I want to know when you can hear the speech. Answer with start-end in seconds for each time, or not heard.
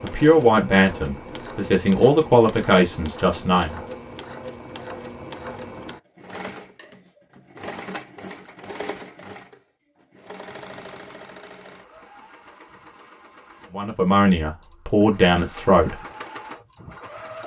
0.0-3.8, 13.7-16.0.